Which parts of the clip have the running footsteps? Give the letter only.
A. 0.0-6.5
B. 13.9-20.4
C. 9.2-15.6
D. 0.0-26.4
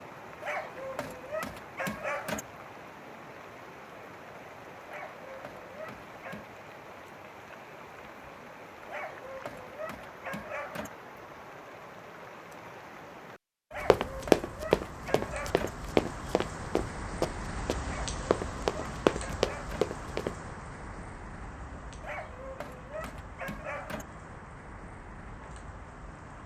B.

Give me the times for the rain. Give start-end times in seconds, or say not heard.
0.0-26.4.